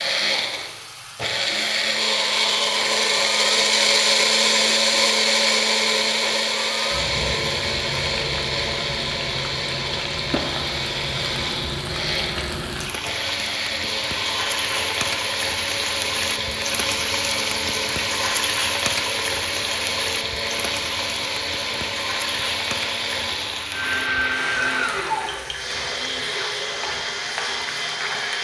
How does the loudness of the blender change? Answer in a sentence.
The volume of the blender goes down.